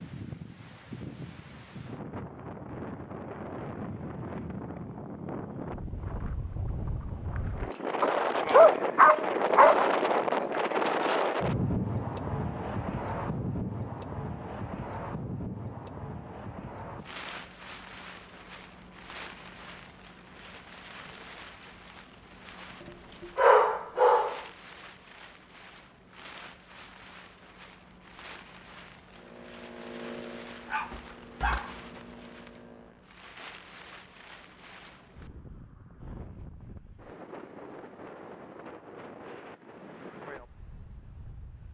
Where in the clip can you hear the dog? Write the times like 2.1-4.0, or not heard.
8.0-9.8, 23.4-24.4, 30.6-32.0.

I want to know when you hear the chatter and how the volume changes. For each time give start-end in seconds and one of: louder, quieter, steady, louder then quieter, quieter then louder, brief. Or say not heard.
not heard.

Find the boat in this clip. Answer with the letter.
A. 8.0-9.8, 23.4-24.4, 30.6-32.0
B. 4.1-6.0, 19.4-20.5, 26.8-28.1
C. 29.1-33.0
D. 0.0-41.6
C.